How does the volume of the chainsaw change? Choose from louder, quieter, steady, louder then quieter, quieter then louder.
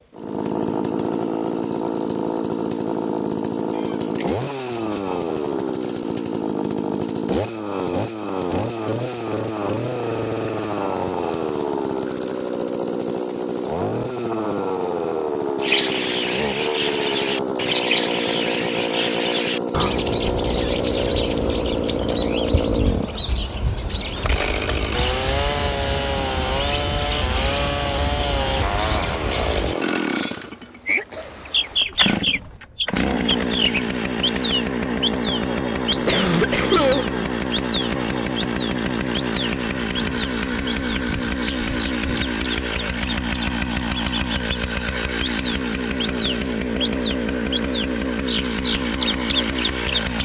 steady.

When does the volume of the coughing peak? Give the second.
37 s.